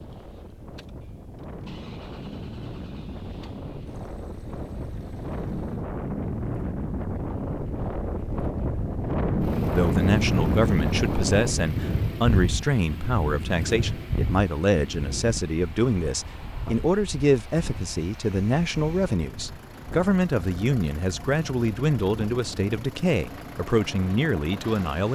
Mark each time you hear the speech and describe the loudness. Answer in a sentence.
The speech can be heard from 9.7 to 25.1 s, at a steady volume.